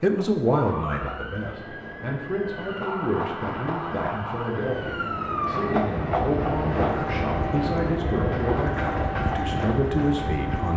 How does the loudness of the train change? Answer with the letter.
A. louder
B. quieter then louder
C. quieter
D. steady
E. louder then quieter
A.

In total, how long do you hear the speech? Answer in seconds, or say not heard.
11 s.